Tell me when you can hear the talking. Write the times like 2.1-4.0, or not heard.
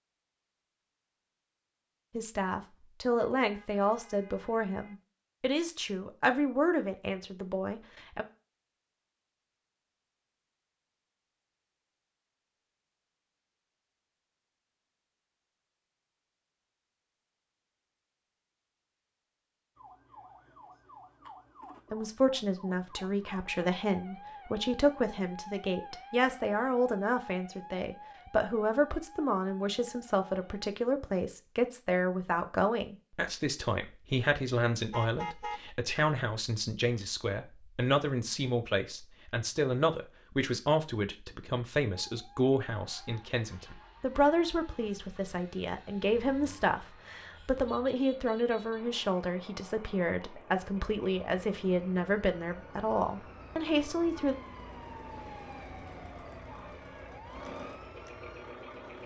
2.1-8.2, 21.9-54.4.